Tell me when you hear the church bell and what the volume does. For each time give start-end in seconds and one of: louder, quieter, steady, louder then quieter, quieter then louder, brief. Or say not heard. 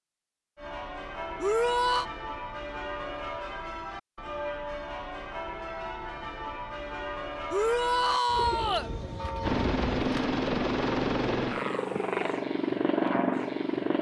0.6-9.9 steady.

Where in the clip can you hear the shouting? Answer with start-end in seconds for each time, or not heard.
1.4-2.0, 7.5-8.9.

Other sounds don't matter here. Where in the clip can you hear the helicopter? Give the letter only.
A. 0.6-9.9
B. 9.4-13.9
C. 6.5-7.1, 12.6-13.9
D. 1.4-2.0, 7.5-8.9
B.